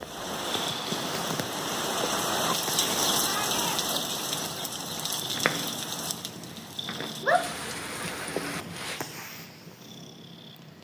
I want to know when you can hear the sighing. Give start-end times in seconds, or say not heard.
not heard.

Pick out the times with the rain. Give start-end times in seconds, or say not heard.
0.0-9.0.